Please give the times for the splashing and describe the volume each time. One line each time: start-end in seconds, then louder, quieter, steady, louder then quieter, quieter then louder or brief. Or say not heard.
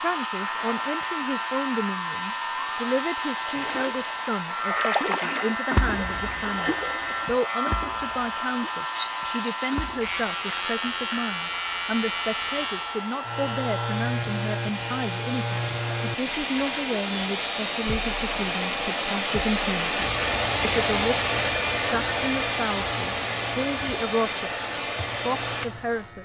3.5-4.0 brief
4.7-10.2 quieter then louder.